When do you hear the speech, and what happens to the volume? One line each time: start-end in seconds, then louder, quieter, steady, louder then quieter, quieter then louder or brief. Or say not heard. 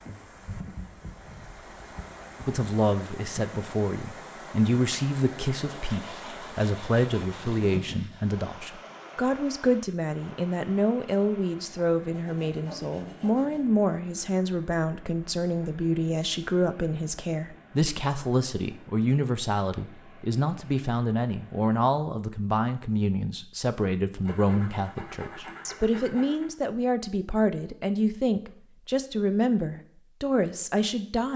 2.4-31.3 steady.